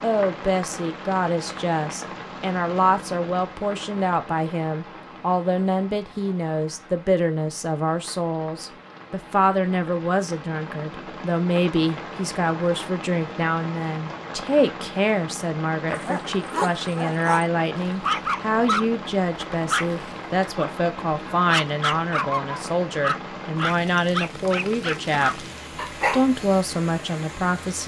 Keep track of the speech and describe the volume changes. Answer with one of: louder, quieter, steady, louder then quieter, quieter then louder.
steady.